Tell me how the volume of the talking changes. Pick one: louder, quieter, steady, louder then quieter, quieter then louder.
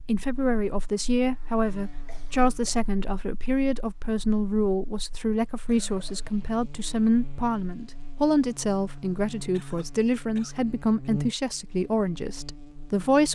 steady.